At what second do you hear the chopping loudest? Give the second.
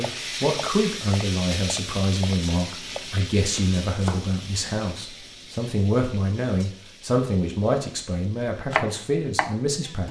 9 s.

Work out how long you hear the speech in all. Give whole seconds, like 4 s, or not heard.
10 s.